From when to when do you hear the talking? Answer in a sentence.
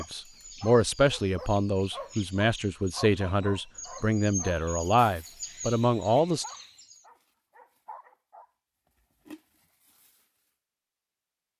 You can hear the talking from 0.0 to 6.5 s.